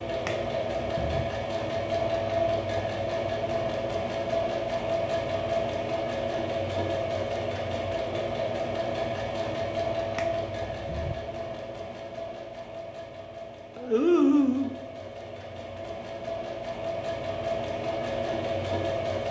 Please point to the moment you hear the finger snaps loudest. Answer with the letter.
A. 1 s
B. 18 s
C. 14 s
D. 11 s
C.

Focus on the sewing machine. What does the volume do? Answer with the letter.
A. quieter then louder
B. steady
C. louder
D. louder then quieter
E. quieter
A.